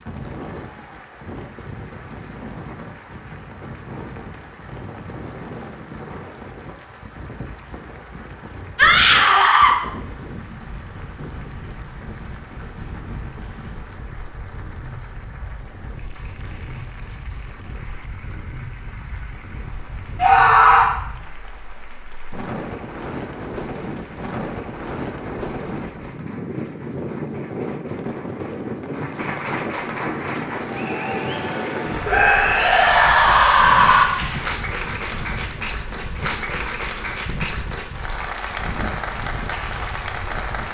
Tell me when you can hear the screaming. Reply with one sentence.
The screaming can be heard from 8.8 to 9.8 s, from 20.1 to 20.9 s and from 32.0 to 34.0 s.